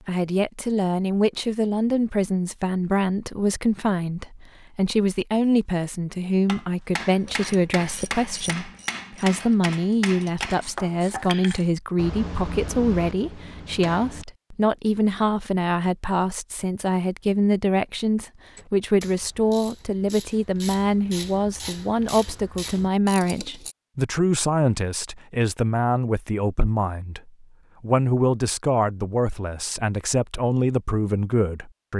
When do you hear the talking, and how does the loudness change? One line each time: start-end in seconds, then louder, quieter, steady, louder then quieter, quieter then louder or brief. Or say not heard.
0.1-31.9 steady.